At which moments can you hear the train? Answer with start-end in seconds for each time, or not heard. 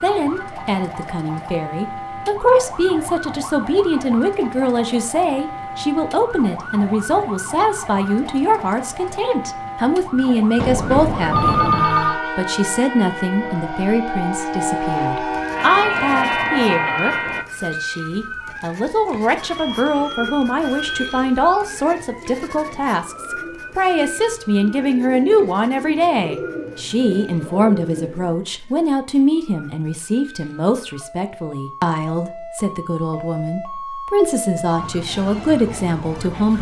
10.6-17.4.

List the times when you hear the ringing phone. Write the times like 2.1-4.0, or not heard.
11.3-12.2, 19.4-21.2.